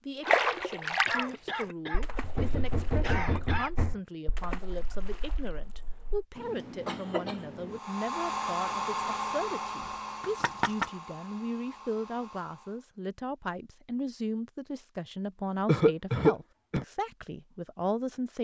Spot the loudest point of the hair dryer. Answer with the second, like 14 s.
9 s.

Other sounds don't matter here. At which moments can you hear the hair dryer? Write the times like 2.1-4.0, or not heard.
7.7-12.8.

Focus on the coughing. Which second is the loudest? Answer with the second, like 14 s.
16 s.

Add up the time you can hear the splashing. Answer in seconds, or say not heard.
6 s.